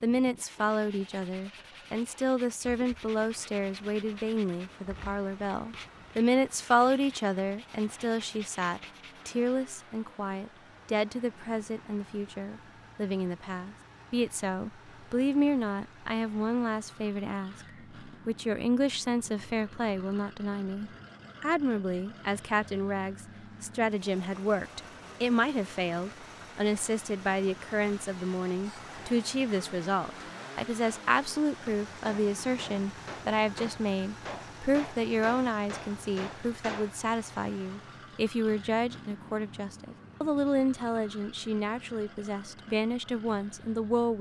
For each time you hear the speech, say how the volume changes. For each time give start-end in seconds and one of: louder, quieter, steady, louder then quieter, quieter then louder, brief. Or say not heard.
0.0-44.1 steady.